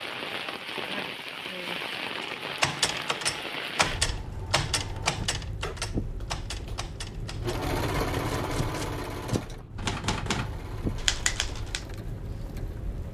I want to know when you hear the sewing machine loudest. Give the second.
8 s.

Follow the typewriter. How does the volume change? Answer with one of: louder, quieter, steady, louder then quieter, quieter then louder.
quieter then louder.